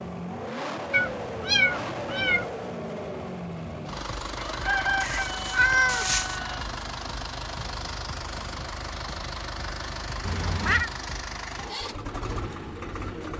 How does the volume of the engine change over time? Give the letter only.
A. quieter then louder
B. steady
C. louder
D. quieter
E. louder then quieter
B.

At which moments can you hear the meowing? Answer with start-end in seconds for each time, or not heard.
0.9-2.5, 5.0-6.4, 10.2-10.9.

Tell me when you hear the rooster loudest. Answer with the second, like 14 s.
5 s.